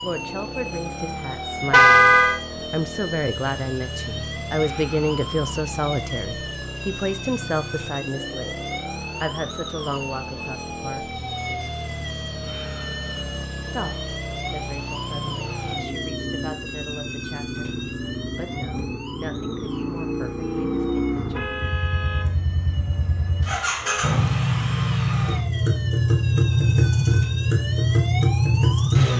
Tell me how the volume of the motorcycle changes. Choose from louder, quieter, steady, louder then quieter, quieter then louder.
louder.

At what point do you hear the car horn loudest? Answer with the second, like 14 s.
2 s.